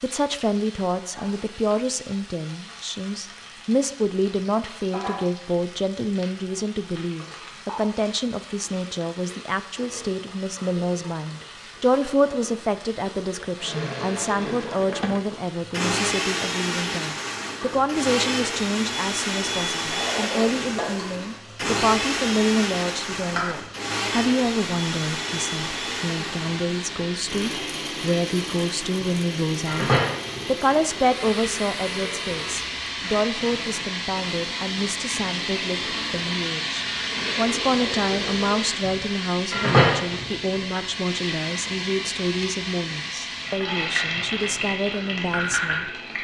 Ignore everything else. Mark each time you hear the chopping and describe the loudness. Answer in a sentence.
The chopping can't be heard in this clip.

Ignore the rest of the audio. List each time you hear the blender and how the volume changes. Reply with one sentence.
You can hear the blender from 13.6 to 38.8 s, getting quieter.